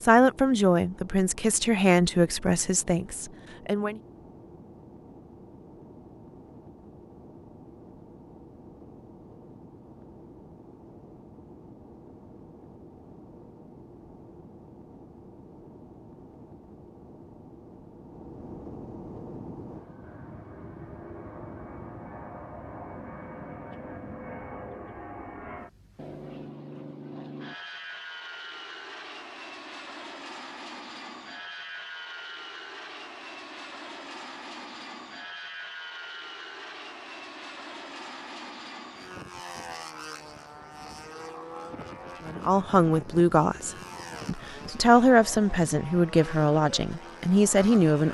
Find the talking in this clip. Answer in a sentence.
You can hear the talking from 0.0 to 4.0 s and from 42.2 to 48.1 s.